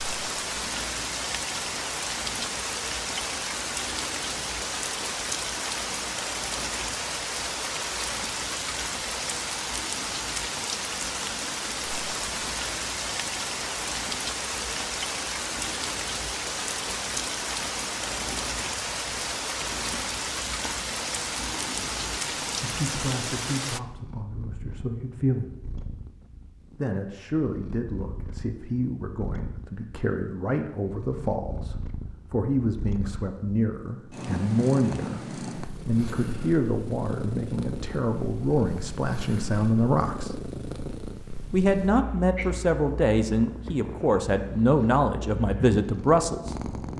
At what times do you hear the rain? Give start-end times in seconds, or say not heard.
0.0-23.8.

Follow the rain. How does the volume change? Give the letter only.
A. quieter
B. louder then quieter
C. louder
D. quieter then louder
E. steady
E.